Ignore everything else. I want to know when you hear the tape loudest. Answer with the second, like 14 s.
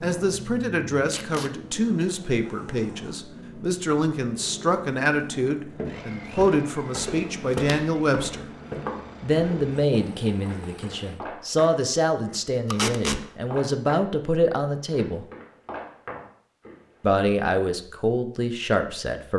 13 s.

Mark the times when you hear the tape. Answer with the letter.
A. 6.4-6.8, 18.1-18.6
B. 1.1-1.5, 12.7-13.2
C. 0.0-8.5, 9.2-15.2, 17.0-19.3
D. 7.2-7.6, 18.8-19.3
B.